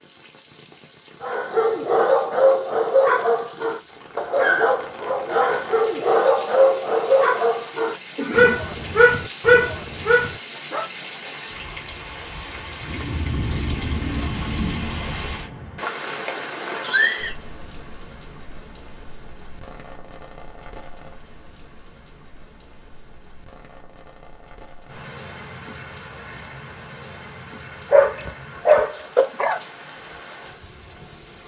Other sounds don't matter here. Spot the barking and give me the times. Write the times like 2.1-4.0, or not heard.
1.2-10.8, 27.9-29.6.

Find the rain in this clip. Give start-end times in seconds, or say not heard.
0.0-31.4.